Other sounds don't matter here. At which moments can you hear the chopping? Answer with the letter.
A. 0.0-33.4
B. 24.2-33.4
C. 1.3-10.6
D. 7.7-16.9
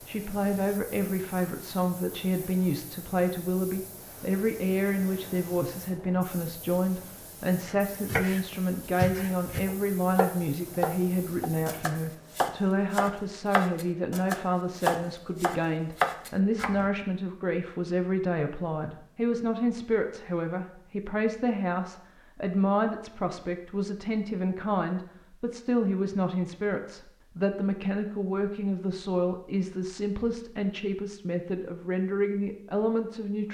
D.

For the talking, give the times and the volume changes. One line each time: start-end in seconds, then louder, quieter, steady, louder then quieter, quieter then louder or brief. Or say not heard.
0.0-33.4 steady.